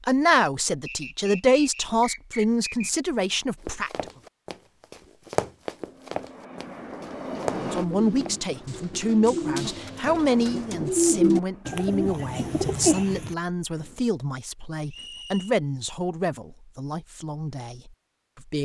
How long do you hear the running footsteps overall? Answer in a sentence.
The running footsteps can be heard for 7 seconds in total.